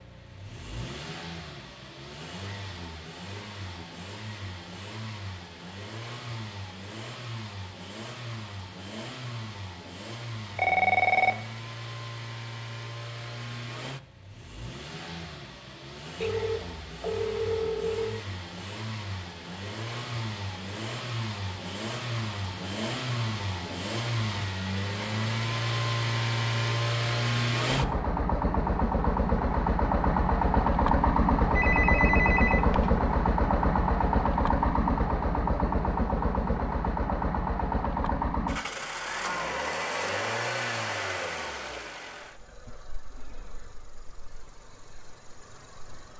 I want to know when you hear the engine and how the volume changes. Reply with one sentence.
The engine can be heard from 0.0 to 46.1 s, getting louder then quieter.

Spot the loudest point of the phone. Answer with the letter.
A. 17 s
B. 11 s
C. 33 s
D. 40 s
B.